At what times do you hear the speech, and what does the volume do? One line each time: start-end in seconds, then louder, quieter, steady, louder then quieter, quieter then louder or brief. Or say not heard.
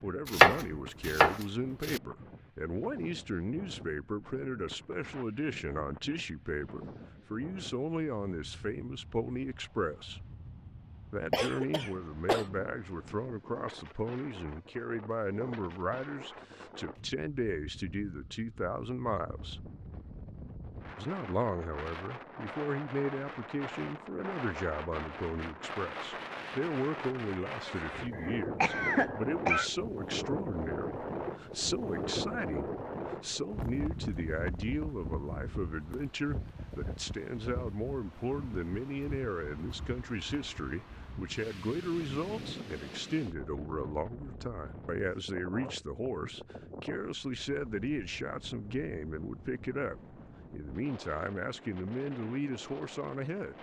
0.0-10.2 steady
11.1-19.6 steady
20.9-53.5 steady.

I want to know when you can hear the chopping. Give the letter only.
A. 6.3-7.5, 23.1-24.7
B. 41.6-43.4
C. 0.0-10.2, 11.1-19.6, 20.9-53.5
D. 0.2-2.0
D.